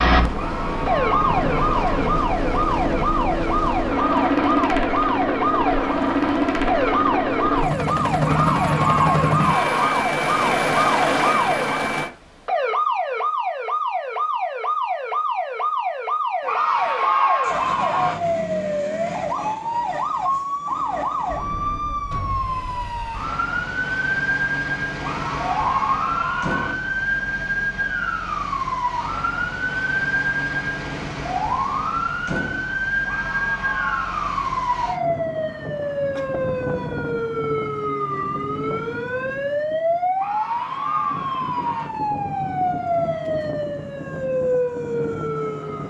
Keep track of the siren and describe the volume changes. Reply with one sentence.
The volume of the siren stays about the same.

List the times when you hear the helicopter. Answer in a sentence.
You can hear the helicopter from 0.0 to 12.1 s.